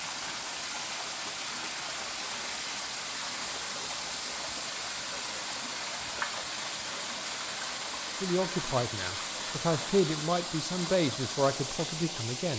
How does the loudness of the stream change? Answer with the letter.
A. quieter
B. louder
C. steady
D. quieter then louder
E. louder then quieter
C.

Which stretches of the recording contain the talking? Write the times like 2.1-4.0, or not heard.
8.2-12.5.